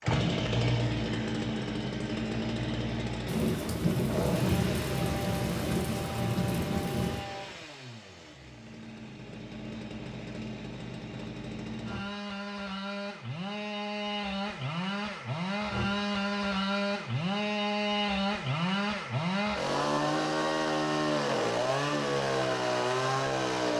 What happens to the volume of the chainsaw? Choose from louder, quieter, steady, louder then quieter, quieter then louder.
quieter then louder.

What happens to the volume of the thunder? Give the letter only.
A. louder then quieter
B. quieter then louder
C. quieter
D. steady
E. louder
D.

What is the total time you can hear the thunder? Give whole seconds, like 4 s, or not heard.
4 s.